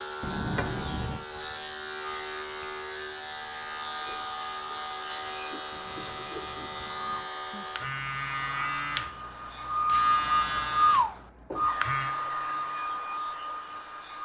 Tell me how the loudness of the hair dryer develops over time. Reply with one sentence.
The volume of the hair dryer goes up, then down.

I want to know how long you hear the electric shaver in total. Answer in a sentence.
The electric shaver can be heard for 14 seconds in total.